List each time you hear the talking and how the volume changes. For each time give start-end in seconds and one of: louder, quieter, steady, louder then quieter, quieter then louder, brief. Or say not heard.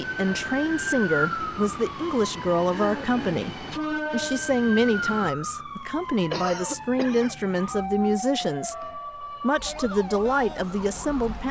0.0-11.4 steady.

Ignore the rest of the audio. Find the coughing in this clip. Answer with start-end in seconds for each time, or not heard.
2.6-3.5, 6.3-7.3.